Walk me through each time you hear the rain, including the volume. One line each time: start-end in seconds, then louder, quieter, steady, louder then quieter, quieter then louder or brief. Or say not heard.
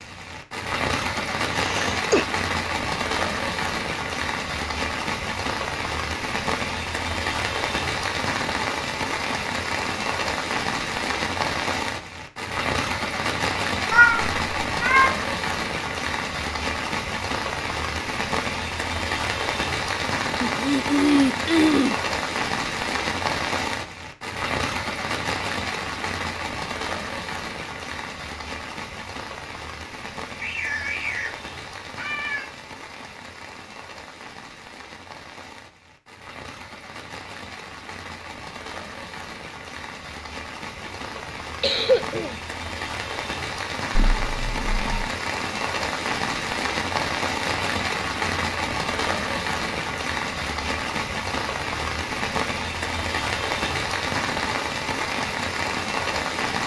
0.0-56.6 quieter then louder.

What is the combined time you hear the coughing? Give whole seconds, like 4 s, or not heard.
4 s.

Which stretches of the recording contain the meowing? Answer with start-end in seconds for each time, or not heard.
13.9-15.1, 30.4-32.5, 44.0-45.0.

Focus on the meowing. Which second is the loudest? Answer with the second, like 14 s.
14 s.